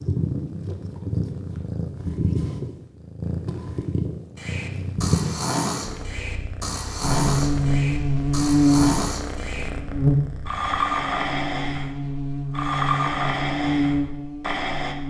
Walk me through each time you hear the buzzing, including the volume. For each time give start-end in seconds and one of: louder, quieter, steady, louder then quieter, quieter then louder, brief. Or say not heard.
7.0-15.0 quieter then louder.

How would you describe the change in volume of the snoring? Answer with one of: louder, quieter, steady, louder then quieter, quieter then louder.
steady.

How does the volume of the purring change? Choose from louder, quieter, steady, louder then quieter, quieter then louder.
quieter.